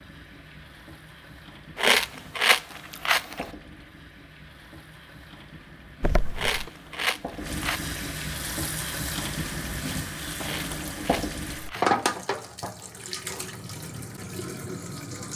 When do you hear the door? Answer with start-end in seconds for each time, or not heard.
6.0-6.7.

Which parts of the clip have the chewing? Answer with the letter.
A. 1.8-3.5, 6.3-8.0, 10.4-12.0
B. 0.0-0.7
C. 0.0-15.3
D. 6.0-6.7
A.